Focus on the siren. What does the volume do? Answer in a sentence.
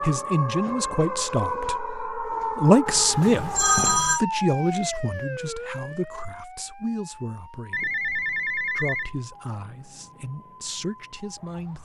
The loudness of the siren goes down.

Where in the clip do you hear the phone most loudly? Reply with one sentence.
The volume of the phone peaks at 4 seconds.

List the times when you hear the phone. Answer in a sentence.
You can hear the phone from 2.9 to 4.2 s and from 7.7 to 9.1 s.